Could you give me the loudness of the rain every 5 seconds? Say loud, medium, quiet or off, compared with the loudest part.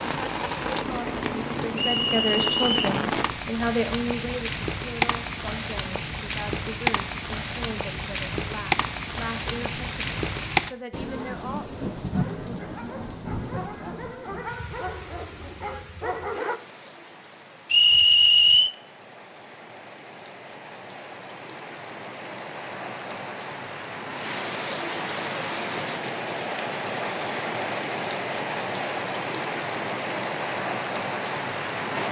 loud, loud, loud, quiet, medium, loud, loud.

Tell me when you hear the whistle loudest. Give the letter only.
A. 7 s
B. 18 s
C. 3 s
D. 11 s
B.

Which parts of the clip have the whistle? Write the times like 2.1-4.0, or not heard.
1.8-2.9, 17.7-18.7.